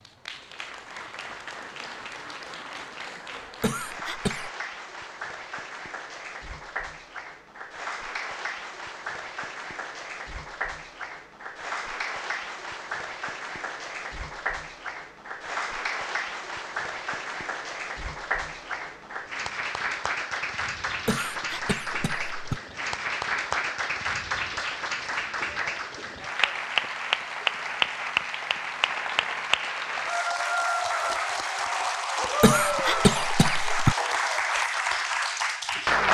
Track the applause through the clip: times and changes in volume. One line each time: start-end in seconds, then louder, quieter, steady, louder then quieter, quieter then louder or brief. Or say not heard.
0.0-36.0 louder.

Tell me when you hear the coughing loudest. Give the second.
33 s.